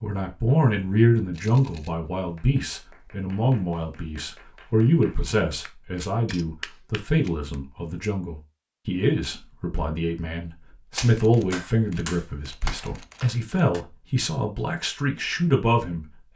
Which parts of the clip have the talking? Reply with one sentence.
The talking can be heard from 0.0 to 16.3 s.